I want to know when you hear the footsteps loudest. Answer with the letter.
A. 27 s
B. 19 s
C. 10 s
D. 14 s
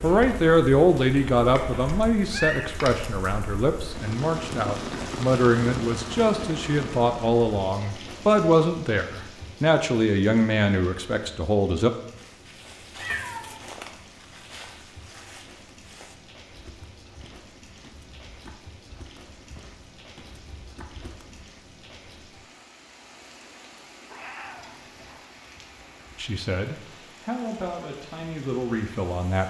D.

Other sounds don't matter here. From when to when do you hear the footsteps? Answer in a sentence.
The footsteps can be heard from 12.2 to 21.5 s.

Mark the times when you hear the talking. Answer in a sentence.
You can hear the talking from 0.0 to 11.9 s and from 26.2 to 29.4 s.